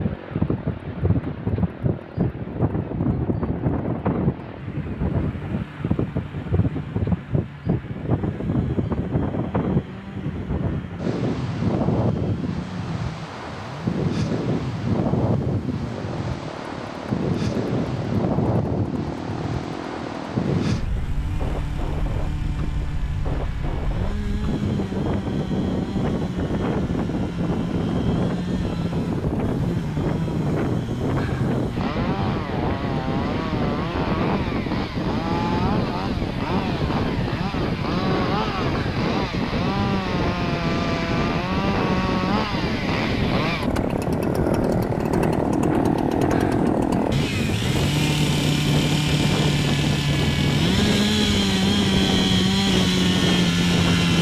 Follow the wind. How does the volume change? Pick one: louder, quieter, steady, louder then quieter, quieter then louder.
steady.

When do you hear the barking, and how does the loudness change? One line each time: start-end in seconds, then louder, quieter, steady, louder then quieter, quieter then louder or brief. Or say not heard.
not heard.